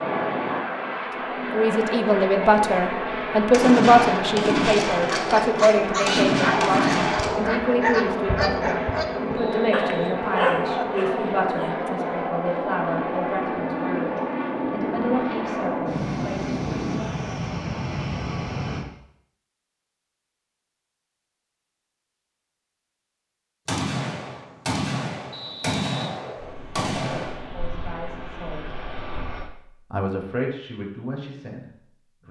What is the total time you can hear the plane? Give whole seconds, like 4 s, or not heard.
22 s.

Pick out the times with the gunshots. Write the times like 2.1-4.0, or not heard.
3.5-7.3, 23.6-27.4.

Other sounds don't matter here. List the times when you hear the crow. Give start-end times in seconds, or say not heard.
not heard.